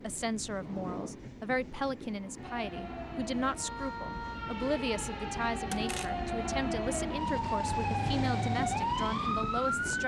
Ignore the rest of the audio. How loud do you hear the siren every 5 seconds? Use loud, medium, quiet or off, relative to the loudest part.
medium, loud.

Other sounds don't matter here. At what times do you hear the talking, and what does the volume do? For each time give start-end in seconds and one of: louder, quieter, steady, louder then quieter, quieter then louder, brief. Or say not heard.
0.0-10.0 steady.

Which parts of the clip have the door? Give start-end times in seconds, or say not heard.
0.6-1.2, 5.7-6.2.